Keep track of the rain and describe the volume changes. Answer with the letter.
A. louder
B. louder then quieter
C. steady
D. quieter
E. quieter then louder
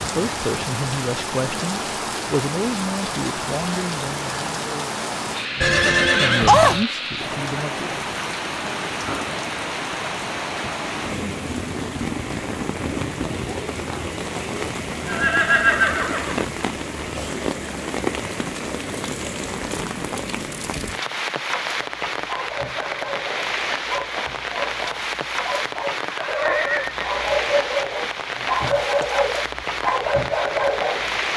C.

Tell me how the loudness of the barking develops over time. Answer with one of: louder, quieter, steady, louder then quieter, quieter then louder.
louder.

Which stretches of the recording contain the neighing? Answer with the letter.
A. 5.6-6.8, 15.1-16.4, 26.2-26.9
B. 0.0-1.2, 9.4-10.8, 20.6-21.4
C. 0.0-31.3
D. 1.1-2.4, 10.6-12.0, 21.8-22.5
A.